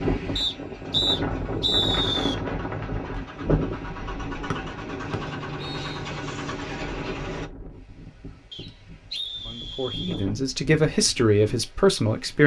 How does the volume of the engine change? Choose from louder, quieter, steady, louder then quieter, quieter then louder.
louder.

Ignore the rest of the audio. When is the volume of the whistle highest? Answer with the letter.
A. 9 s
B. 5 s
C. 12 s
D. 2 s
D.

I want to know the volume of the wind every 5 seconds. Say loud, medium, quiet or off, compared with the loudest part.
loud, quiet, medium.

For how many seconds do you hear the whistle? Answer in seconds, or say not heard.
5 s.